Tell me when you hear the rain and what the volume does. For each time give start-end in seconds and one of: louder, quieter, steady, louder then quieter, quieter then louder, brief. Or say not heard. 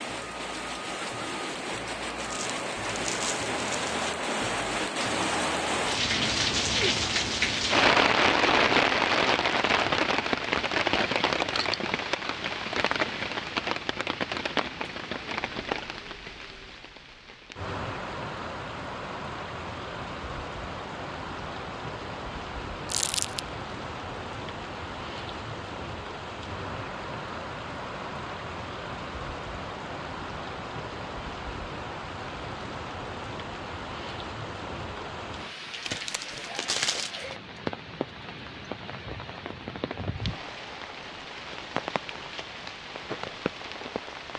0.0-44.3 quieter.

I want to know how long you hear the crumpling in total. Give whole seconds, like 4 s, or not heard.
4 s.